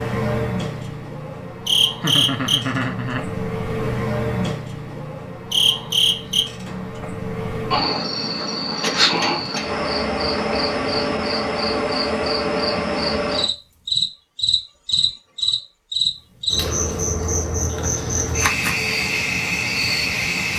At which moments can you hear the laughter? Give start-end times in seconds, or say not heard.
2.0-3.2.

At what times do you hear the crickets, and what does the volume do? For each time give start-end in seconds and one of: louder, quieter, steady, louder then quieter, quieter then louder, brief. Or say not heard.
0.0-20.5 steady.